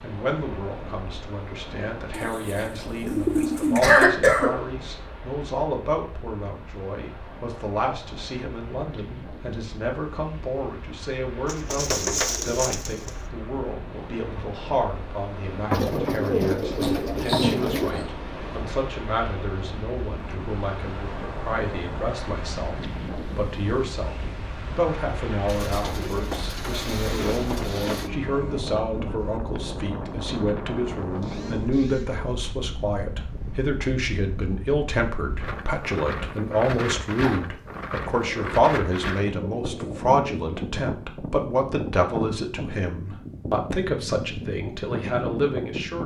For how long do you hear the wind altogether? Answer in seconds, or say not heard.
46 s.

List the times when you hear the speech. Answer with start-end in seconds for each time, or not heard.
0.0-46.0.